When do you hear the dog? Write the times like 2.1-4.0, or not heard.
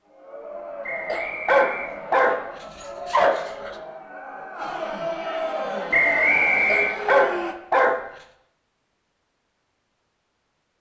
1.1-3.7, 6.7-8.0.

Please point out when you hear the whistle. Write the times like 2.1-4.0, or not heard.
0.8-2.3, 5.9-7.0.